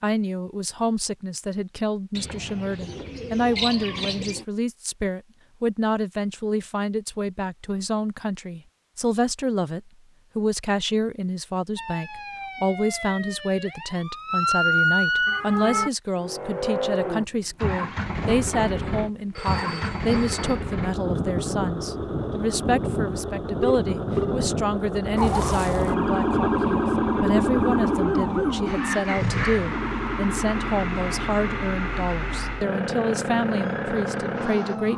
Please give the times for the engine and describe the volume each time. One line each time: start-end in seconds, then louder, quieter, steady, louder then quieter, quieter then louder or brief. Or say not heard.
16.1-34.9 steady.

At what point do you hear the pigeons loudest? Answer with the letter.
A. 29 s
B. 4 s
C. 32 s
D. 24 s
B.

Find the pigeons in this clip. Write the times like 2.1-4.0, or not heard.
2.1-4.5.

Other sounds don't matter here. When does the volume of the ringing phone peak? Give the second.
24 s.